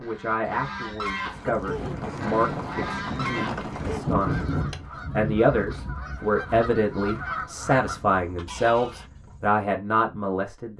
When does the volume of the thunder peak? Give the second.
4 s.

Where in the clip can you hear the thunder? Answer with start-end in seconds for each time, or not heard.
1.6-4.7.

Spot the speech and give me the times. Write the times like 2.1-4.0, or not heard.
0.0-10.7.